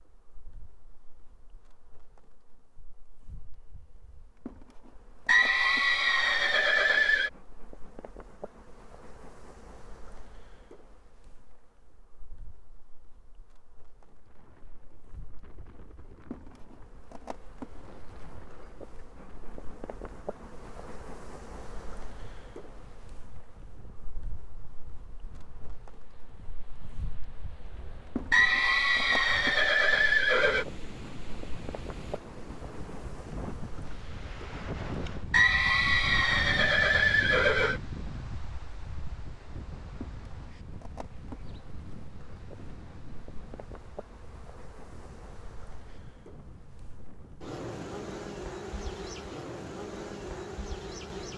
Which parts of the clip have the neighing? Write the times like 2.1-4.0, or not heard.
5.2-7.3, 28.3-30.6, 35.3-37.8.